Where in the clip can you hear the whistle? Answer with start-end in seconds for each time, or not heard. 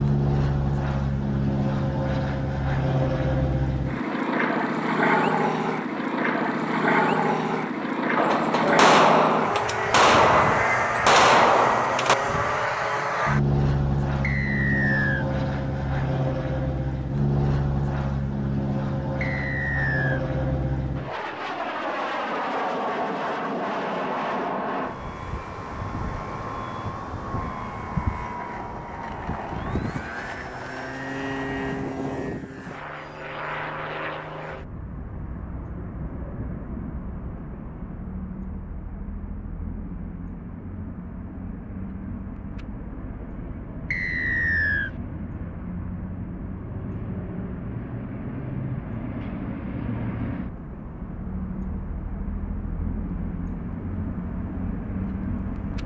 14.2-15.2, 19.2-20.2, 43.9-44.9.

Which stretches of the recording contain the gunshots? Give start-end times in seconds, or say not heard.
8.2-12.2.